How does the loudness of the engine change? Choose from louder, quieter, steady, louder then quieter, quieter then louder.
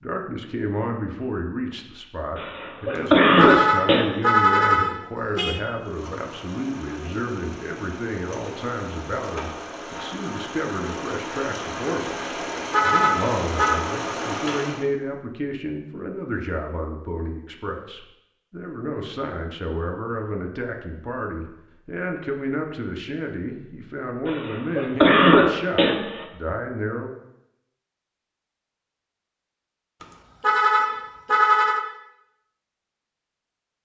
louder.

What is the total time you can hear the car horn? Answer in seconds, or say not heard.
6 s.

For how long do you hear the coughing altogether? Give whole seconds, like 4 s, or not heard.
4 s.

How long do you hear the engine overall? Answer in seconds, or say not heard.
9 s.